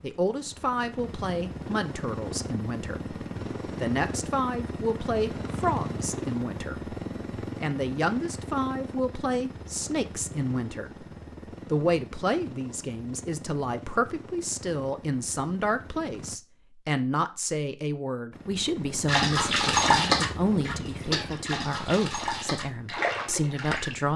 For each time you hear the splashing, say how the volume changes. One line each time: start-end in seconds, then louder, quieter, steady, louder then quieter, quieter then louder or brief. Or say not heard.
19.1-23.9 quieter then louder.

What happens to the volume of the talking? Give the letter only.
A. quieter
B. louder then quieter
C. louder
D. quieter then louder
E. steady
E.